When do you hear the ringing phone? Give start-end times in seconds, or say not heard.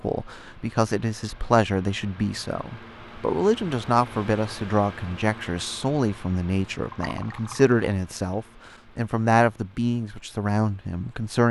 not heard.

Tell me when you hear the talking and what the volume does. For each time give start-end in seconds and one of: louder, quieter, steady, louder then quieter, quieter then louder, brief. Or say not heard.
0.0-11.4 steady.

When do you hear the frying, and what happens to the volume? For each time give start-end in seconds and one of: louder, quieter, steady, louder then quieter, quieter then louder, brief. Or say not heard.
not heard.